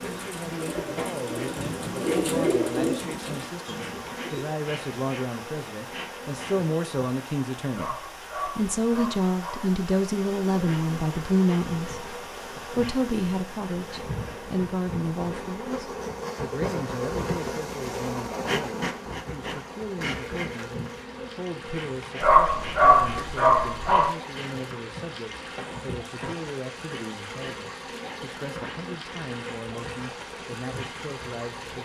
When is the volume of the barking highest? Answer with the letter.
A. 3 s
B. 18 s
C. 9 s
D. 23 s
D.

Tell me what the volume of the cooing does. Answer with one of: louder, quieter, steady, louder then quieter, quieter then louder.
louder then quieter.